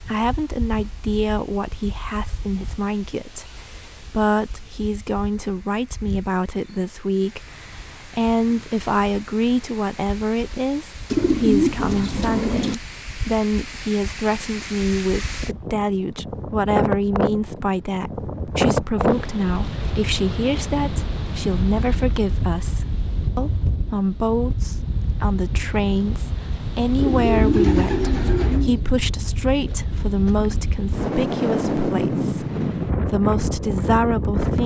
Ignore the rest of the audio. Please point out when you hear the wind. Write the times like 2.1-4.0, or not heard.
0.0-34.6.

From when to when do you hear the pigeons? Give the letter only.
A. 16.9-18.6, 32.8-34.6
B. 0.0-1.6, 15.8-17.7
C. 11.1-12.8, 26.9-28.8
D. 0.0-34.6
C.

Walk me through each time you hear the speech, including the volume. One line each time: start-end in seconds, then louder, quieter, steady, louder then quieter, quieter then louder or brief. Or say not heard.
0.0-34.6 steady.